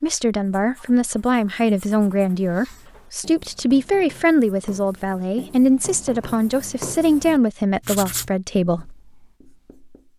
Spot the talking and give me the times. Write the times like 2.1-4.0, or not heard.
0.0-8.9.